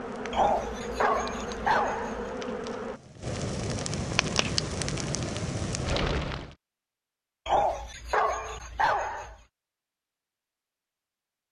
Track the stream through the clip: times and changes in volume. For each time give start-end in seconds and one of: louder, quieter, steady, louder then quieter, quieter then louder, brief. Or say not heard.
not heard.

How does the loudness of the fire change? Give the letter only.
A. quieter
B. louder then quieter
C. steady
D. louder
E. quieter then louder
D.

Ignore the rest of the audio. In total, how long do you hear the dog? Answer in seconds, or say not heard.
4 s.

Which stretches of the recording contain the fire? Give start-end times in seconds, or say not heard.
0.0-6.5.